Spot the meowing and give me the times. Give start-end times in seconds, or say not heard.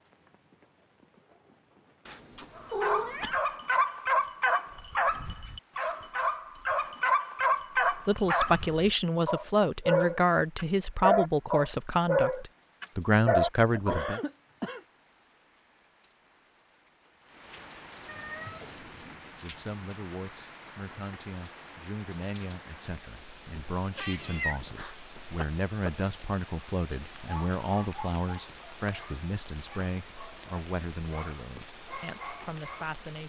2.0-3.4, 18.1-19.2, 23.9-24.9.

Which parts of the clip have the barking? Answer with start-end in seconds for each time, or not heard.
2.5-14.1, 27.1-33.0.